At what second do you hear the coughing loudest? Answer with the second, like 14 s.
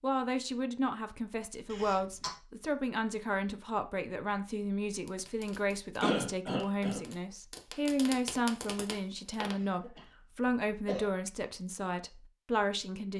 6 s.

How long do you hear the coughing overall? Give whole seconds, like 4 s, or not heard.
3 s.